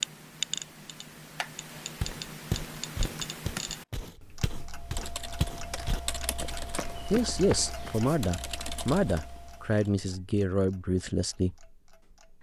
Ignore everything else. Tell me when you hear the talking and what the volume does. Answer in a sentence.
The talking can be heard from 7.1 to 11.7 s, at a steady volume.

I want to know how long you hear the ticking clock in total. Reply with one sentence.
The ticking clock can be heard for 12 seconds in total.